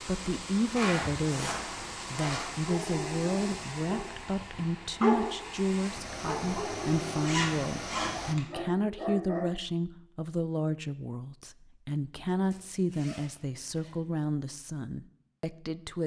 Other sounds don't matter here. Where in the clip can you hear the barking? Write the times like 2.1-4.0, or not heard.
2.6-5.5, 6.2-9.5.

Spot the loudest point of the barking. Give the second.
5 s.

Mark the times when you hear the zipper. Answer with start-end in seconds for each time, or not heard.
0.8-2.5, 7.2-8.4, 12.5-13.9.